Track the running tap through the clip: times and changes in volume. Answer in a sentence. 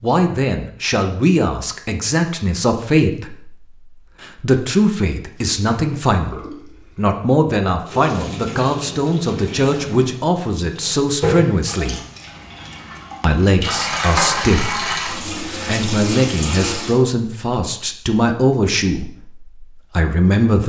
The running tap can be heard from 5.3 to 17.0 s, getting louder.